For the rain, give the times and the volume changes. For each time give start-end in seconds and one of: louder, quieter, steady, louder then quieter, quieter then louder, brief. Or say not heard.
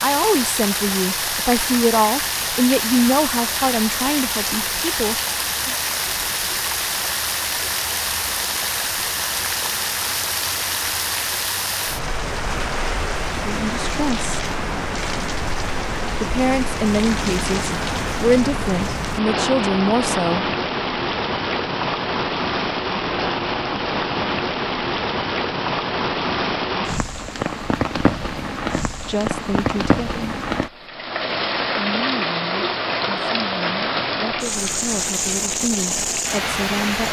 0.0-37.0 steady.